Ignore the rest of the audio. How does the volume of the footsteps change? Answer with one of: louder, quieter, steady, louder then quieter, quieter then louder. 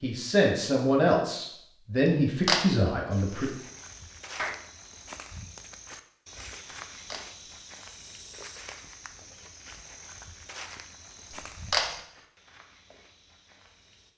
quieter.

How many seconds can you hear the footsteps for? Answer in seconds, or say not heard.
11 s.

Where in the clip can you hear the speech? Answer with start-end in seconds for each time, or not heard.
0.0-3.5.